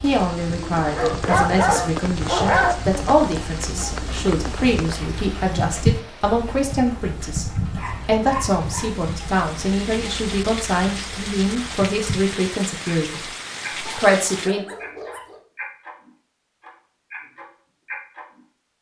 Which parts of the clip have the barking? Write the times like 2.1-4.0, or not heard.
0.8-2.8, 7.8-8.9, 13.8-15.4.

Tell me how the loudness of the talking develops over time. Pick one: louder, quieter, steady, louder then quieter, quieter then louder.
steady.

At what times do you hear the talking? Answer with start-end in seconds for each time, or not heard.
0.0-7.5, 8.1-14.7.